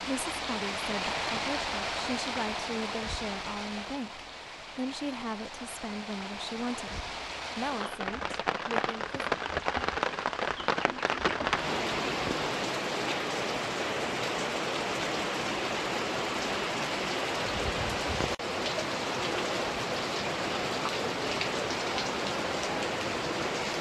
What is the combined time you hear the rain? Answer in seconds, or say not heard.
24 s.